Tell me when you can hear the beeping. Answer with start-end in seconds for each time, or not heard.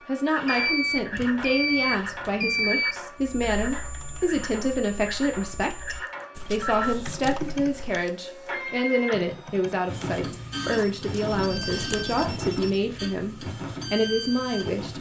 0.5-3.0, 6.6-7.4, 10.7-12.8.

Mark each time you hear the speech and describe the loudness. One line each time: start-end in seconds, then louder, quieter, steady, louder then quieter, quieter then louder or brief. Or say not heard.
0.1-14.9 steady.